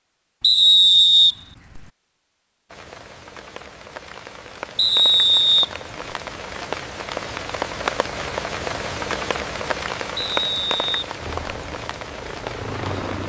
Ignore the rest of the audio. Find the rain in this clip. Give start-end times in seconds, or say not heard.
2.7-13.2.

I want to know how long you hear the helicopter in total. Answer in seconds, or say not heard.
2 s.